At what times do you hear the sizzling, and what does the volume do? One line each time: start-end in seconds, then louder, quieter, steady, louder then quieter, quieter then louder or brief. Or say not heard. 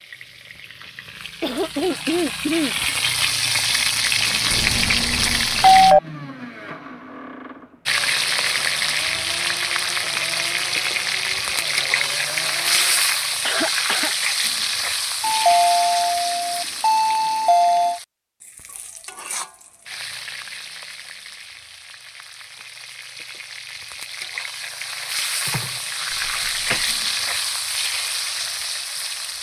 0.0-6.0 louder
7.8-29.3 quieter then louder.